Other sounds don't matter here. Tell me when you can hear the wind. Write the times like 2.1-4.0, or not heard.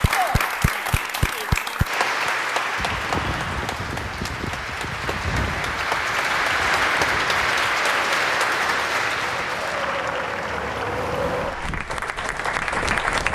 2.8-13.3.